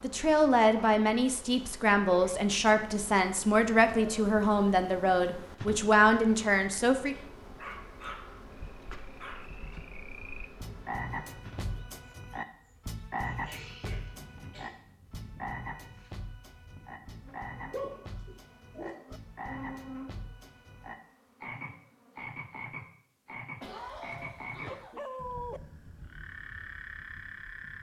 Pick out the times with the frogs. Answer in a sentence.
You can hear the frogs from 8.4 to 27.7 s.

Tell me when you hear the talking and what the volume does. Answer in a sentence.
The talking can be heard from 0.0 to 7.2 s, at a steady volume.